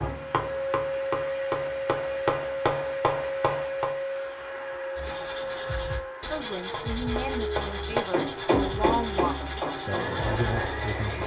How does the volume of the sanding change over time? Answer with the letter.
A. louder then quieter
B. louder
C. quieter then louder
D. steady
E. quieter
D.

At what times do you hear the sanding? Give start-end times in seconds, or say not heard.
5.0-11.2.